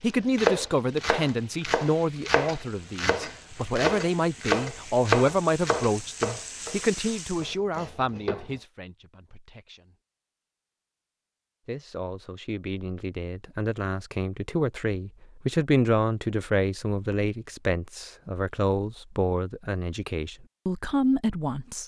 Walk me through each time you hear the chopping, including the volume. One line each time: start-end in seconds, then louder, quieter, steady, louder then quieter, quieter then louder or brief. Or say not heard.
0.3-8.4 louder then quieter.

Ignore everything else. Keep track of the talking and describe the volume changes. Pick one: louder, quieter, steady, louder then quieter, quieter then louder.
quieter then louder.